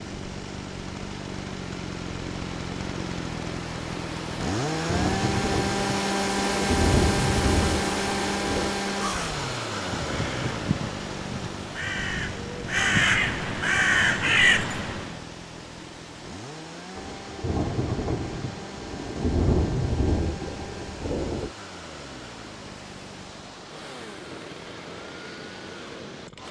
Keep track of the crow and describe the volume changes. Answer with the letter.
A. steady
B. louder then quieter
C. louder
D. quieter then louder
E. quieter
C.